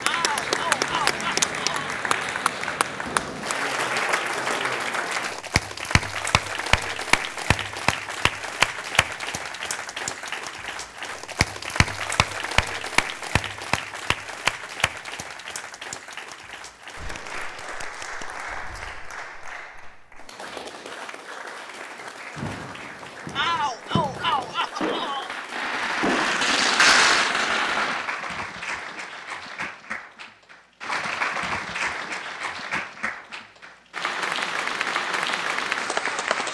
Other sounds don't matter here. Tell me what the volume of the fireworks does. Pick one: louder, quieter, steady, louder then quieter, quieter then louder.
louder.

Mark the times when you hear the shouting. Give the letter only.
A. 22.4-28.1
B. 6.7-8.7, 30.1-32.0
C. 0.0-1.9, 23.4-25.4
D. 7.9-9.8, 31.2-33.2
C.